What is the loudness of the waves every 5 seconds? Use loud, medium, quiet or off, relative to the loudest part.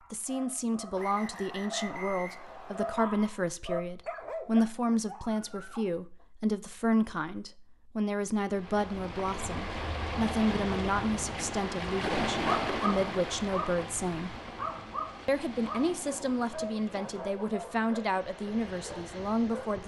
off, medium, loud, quiet.